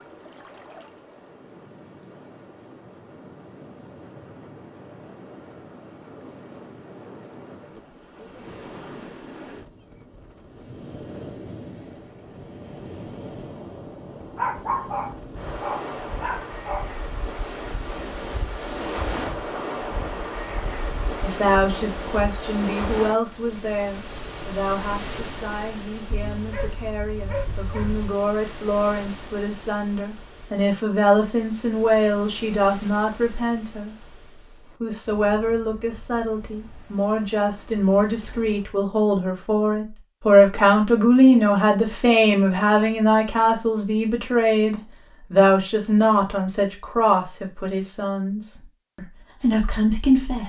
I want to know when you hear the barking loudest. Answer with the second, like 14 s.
15 s.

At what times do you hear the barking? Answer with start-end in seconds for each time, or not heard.
14.3-16.9, 26.1-28.1.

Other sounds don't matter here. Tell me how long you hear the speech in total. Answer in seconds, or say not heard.
28 s.